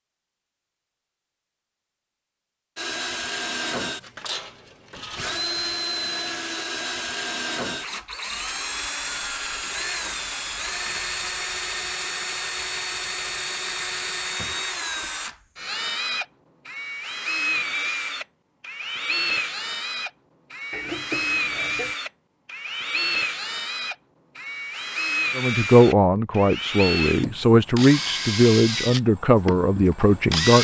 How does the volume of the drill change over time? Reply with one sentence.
The loudness of the drill stays about the same.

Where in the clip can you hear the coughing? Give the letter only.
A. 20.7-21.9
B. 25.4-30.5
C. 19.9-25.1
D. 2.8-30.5
A.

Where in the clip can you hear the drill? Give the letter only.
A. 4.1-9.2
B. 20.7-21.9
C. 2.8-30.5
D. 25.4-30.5
C.